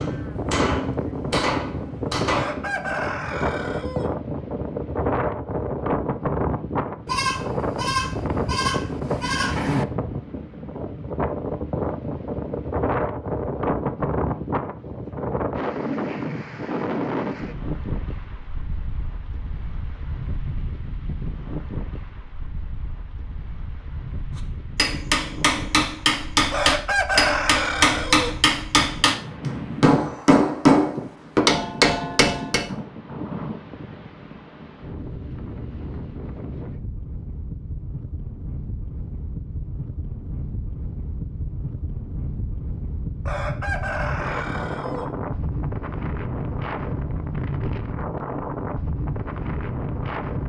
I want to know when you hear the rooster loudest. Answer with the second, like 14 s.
27 s.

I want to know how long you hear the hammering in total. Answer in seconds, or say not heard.
11 s.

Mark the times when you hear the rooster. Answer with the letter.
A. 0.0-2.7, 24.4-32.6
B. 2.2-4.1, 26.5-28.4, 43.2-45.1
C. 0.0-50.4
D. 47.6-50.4
B.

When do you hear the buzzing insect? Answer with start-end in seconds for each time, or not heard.
not heard.